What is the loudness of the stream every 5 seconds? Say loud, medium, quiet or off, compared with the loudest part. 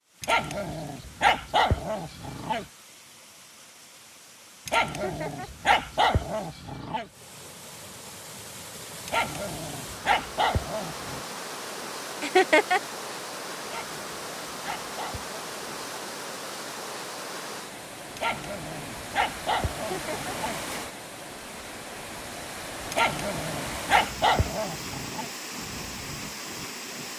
quiet, medium, loud, loud, loud, loud.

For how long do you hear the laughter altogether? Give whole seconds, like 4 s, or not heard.
2 s.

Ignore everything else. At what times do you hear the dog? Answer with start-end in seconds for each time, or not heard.
0.2-2.6, 4.7-7.0, 9.1-11.2, 13.7-16.0, 18.1-20.6, 22.9-25.2.